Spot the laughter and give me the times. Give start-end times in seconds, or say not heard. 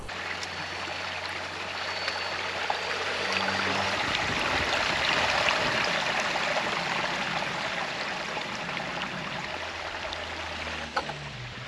not heard.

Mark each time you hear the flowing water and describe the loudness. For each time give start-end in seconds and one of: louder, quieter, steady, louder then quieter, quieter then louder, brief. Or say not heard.
0.0-11.6 louder then quieter.